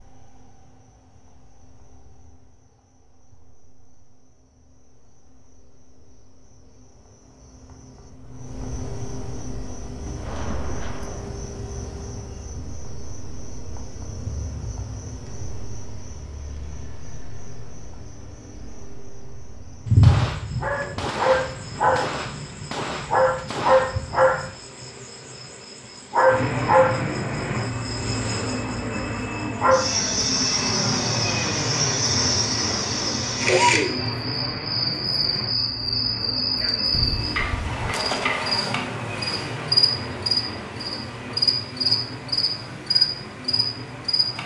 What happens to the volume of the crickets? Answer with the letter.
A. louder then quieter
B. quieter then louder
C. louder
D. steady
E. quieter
C.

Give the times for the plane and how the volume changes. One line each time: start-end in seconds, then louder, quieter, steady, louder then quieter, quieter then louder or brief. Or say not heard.
26.2-44.4 quieter.